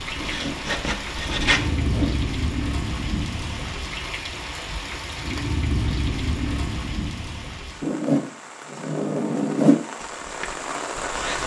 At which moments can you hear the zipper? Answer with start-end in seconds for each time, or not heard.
0.1-2.1, 7.8-9.8.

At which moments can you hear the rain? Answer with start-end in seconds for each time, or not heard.
0.0-11.4.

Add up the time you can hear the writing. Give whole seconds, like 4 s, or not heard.
3 s.